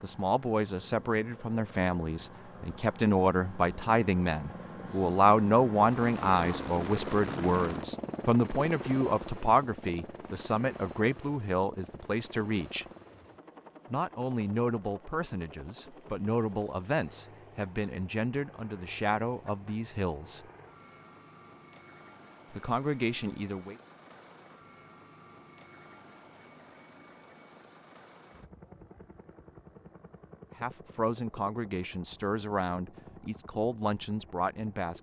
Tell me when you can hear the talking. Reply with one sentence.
The talking can be heard from 0.0 to 12.8 s, from 13.9 to 20.4 s, from 22.5 to 23.8 s and from 30.6 to 34.9 s.